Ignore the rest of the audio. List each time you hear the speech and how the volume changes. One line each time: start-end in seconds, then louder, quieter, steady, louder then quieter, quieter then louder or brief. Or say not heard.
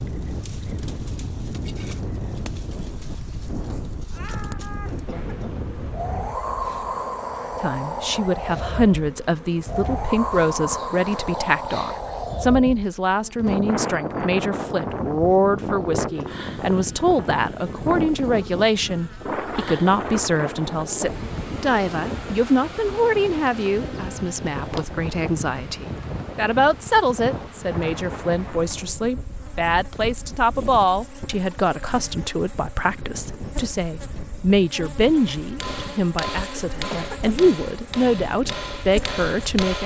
7.6-39.8 steady.